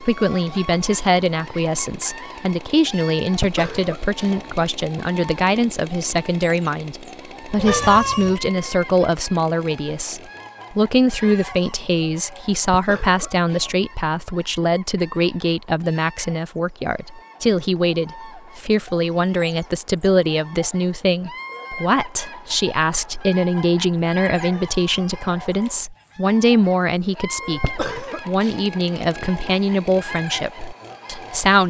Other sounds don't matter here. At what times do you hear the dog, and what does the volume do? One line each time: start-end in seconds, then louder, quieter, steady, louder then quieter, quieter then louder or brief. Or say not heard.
not heard.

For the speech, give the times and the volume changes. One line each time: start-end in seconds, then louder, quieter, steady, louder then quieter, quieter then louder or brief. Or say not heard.
0.0-31.6 steady.